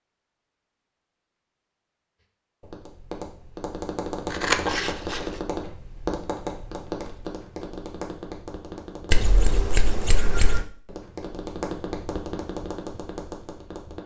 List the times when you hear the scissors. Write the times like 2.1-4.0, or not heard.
4.3-5.2, 9.1-10.7.